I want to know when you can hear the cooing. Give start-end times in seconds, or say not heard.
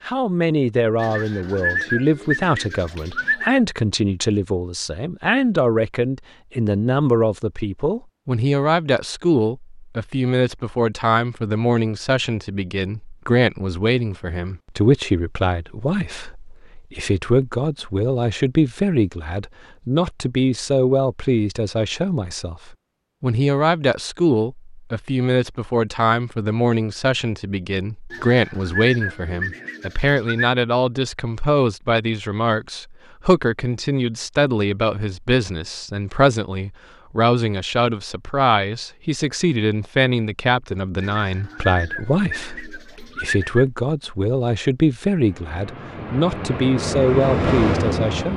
1.0-3.6, 28.1-30.5, 41.0-43.6.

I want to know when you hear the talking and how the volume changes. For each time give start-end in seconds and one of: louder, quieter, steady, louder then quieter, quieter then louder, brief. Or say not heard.
0.0-48.3 steady.